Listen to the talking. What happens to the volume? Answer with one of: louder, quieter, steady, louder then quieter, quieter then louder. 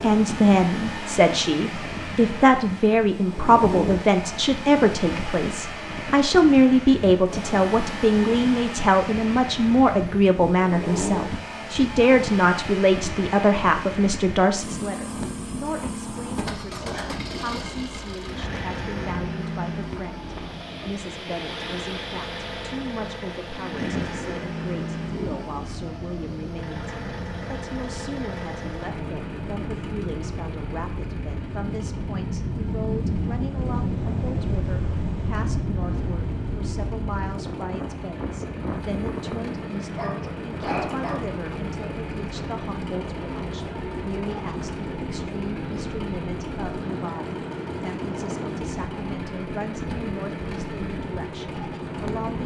quieter.